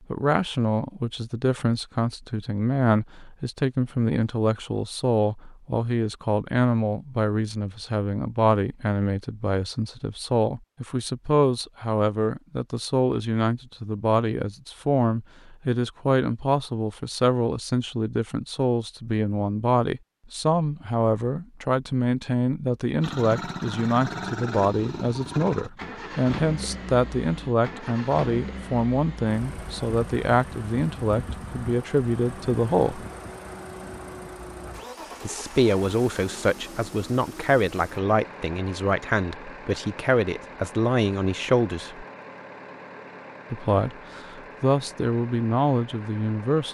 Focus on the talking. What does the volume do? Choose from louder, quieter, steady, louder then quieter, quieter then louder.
steady.